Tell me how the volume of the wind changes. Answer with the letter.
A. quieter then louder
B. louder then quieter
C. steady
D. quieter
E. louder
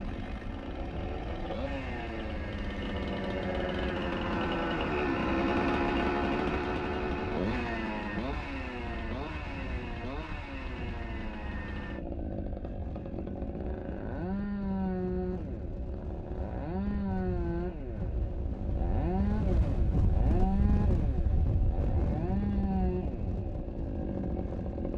E.